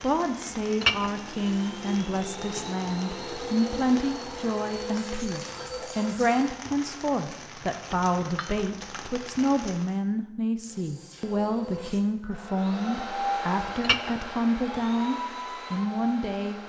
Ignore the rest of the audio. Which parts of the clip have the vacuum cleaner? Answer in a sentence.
You can hear the vacuum cleaner from 0.0 to 6.5 s and from 10.7 to 16.6 s.